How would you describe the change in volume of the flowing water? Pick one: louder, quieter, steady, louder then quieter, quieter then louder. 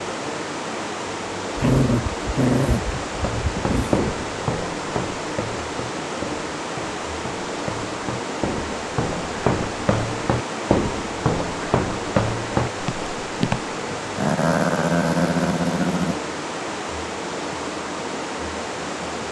steady.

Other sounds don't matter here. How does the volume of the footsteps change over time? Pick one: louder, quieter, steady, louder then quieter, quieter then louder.
quieter then louder.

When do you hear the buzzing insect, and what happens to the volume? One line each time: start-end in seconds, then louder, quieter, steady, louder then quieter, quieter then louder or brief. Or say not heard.
not heard.